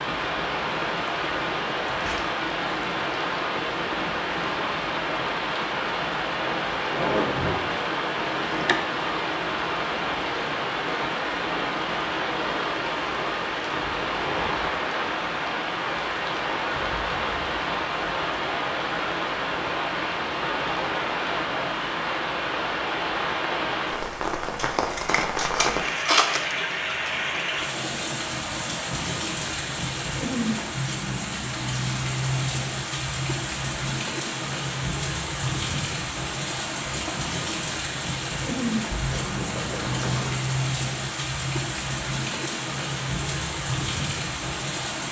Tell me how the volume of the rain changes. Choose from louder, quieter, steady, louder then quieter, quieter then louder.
steady.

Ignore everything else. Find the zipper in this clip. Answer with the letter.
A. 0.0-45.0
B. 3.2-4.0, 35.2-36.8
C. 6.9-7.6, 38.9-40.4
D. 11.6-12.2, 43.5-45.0
C.